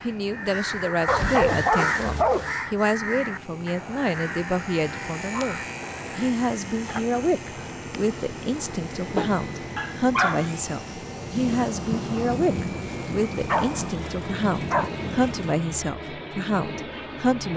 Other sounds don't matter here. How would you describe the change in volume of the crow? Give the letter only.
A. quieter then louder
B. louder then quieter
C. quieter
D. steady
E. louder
C.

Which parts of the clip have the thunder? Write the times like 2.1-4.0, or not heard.
11.3-15.6.